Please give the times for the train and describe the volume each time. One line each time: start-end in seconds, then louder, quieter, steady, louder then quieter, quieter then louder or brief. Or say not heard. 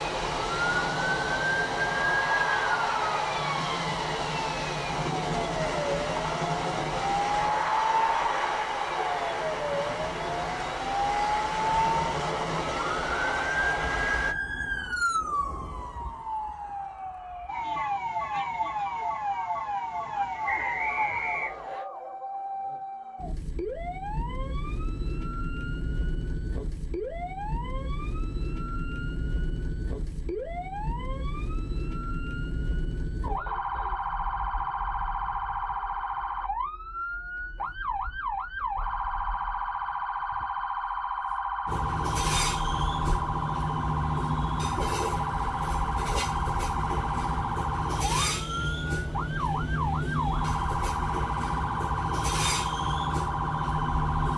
0.0-14.3 steady
41.6-54.3 steady.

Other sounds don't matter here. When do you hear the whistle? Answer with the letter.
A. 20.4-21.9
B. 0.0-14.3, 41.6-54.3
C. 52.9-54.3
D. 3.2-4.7
A.